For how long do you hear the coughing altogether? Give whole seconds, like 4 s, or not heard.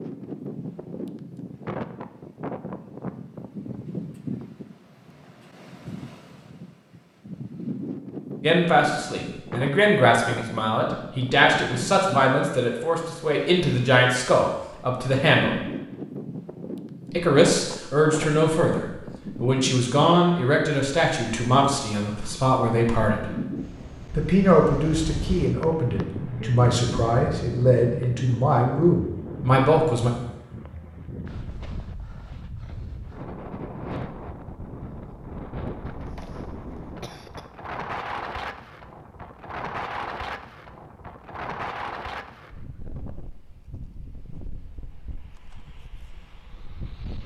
2 s.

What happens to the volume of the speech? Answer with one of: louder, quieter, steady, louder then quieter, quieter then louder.
steady.